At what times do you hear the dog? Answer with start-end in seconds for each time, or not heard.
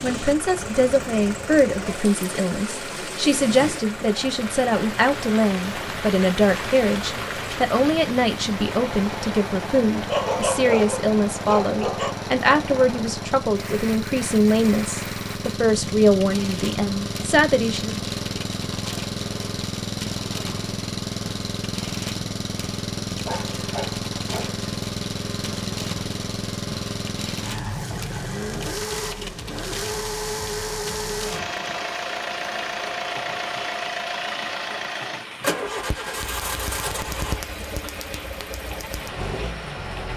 10.1-12.2, 23.1-24.6.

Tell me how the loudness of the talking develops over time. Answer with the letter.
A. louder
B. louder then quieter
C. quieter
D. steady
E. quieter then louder
D.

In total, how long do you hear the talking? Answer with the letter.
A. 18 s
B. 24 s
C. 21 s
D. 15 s
A.